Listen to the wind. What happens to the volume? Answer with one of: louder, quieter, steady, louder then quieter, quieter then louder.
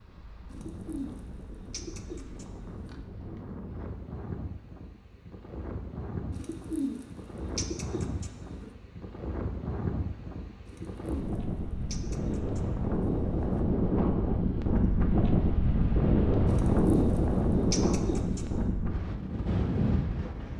louder.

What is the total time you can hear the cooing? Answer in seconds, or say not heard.
10 s.